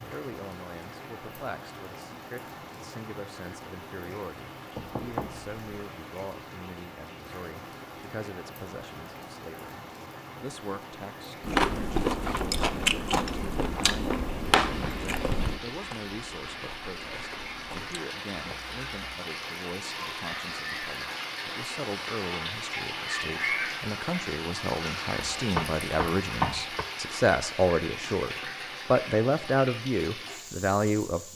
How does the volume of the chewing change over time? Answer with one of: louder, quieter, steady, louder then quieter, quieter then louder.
quieter.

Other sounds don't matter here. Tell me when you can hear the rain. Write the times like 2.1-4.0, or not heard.
0.0-31.3.